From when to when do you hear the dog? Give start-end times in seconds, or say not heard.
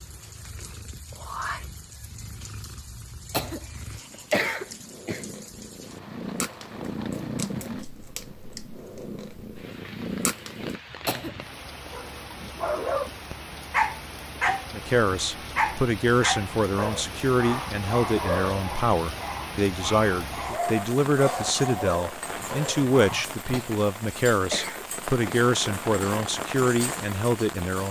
11.9-23.2.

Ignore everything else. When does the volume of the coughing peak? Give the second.
4 s.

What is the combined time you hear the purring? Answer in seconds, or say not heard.
11 s.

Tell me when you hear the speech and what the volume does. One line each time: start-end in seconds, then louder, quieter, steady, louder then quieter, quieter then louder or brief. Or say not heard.
14.7-27.8 steady.